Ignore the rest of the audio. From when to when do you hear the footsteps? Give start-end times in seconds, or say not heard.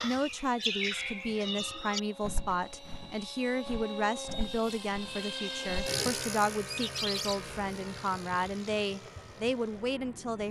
not heard.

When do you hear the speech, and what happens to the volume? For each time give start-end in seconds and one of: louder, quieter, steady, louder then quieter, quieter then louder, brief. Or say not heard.
0.0-10.4 steady.